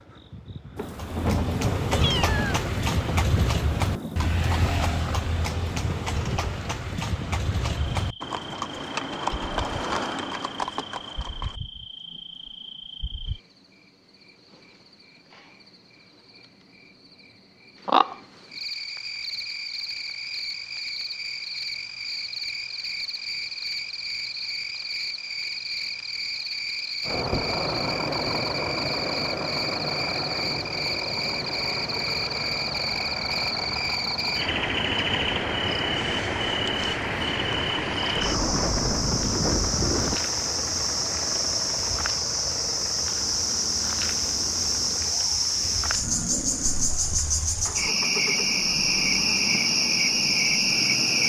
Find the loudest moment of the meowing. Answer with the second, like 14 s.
2 s.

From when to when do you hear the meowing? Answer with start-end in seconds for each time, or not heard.
1.9-2.6, 46.6-47.2.